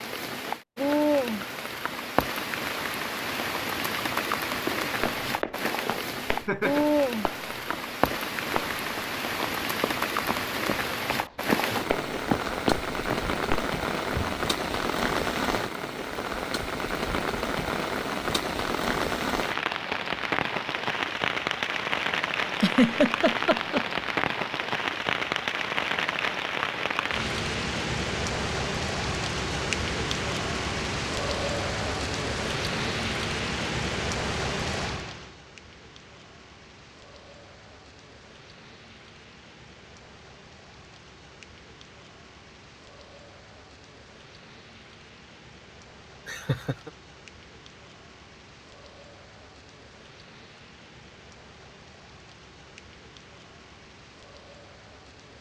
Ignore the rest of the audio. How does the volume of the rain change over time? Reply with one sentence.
The volume of the rain goes down.